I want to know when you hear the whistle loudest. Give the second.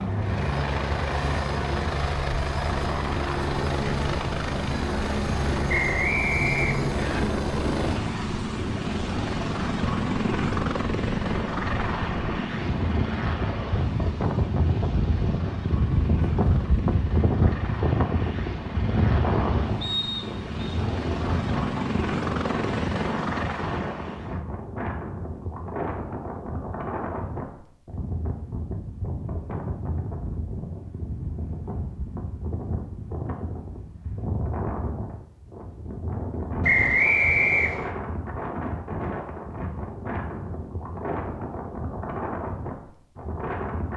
37 s.